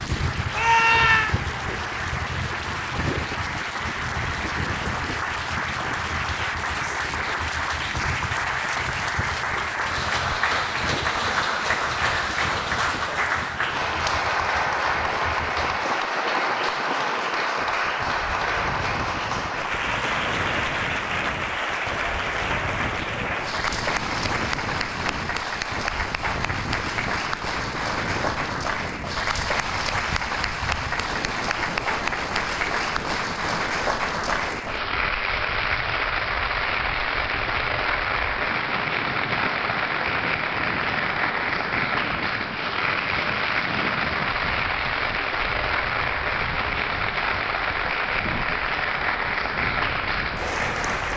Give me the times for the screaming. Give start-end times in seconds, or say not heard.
0.5-1.4.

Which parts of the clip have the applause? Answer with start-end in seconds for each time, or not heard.
0.0-51.1.